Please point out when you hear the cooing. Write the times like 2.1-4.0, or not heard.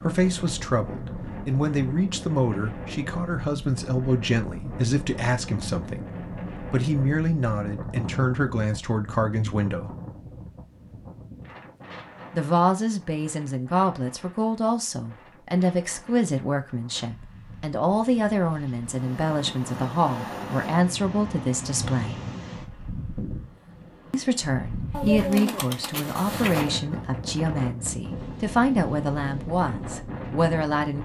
24.9-26.7.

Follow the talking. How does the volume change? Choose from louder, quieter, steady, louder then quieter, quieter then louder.
steady.